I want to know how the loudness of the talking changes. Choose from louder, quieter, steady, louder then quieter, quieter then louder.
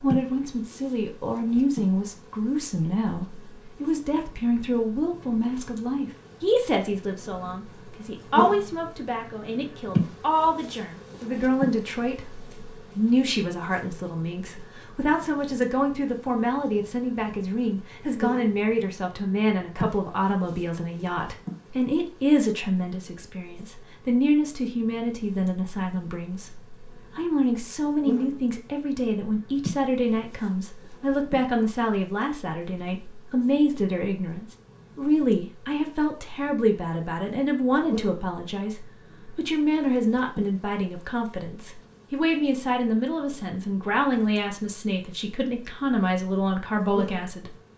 steady.